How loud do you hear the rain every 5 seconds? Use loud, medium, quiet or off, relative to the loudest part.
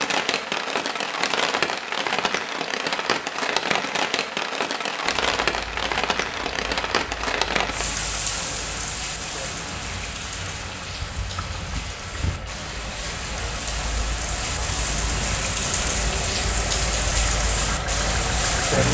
loud, loud, medium, loud.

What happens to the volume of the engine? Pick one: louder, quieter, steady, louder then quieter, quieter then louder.
louder.